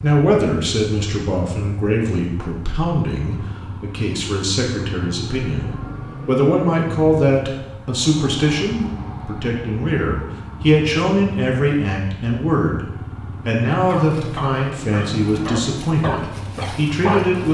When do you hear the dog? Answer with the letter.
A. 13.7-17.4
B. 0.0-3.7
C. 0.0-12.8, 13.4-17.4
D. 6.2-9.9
A.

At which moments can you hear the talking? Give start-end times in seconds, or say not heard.
0.0-12.8, 13.4-17.4.